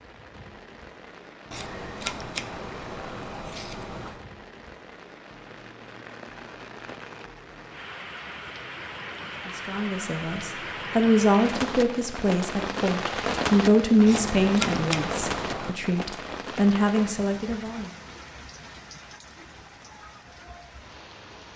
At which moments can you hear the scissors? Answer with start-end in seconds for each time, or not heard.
1.5-4.2, 14.1-15.8.